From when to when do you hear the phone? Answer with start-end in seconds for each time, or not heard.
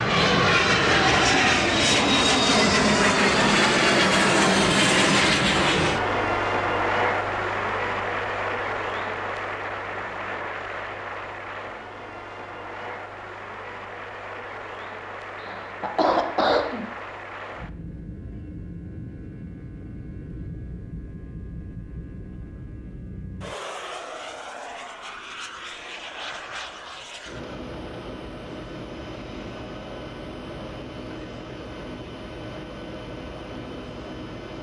not heard.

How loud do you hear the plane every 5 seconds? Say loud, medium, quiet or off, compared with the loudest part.
loud, medium, quiet, quiet, quiet, quiet, quiet.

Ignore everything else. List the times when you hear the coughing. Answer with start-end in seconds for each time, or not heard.
15.3-16.9.